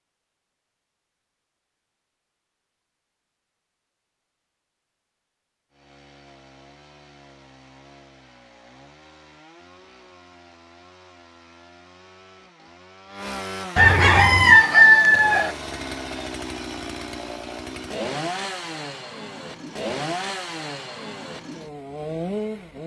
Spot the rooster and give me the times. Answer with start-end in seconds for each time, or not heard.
13.8-15.5.